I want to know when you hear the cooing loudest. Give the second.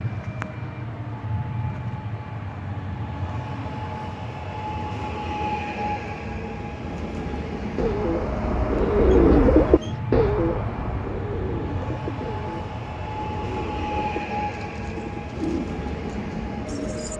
9 s.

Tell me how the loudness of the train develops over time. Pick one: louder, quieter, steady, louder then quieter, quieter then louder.
steady.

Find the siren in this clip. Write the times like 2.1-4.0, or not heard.
not heard.